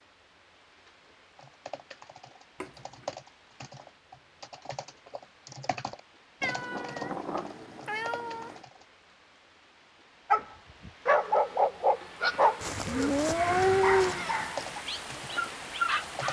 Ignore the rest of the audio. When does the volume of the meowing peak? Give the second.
14 s.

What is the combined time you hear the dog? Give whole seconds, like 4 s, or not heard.
6 s.